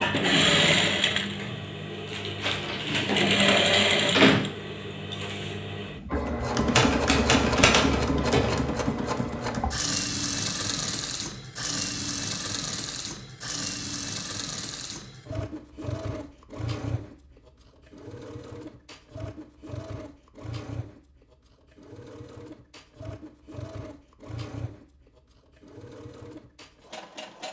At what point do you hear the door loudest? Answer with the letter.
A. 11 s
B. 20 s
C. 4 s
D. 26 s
C.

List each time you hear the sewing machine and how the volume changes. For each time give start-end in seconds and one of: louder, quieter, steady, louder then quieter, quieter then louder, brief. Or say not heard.
0.0-27.4 quieter.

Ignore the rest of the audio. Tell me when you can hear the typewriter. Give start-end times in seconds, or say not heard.
6.7-8.6.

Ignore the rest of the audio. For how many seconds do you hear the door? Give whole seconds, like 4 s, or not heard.
2 s.